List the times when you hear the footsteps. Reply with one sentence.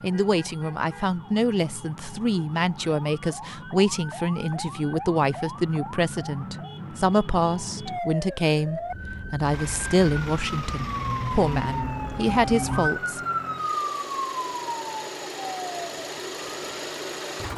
You can't hear the footsteps here.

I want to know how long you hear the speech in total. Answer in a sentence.
The speech can be heard for 13 seconds in total.